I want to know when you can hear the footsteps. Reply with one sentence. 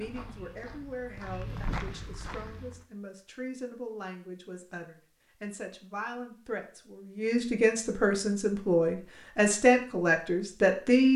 You can hear the footsteps from 0.0 to 2.9 s.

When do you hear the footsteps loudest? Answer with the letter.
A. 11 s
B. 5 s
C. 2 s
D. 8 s
C.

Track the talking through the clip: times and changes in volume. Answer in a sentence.
The talking can be heard from 0.0 to 11.1 s, getting louder.